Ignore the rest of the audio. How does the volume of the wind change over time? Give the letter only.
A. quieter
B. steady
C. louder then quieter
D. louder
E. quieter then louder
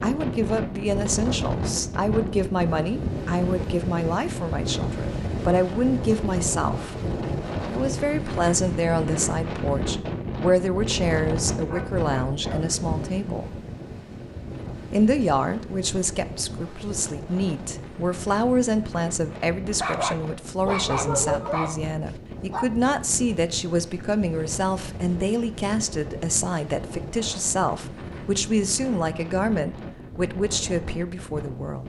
A.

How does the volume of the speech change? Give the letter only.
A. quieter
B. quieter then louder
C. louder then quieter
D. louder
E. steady
E.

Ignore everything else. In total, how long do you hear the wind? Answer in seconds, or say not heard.
32 s.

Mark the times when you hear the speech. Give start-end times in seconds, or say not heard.
0.0-7.0, 7.7-13.6, 14.9-31.8.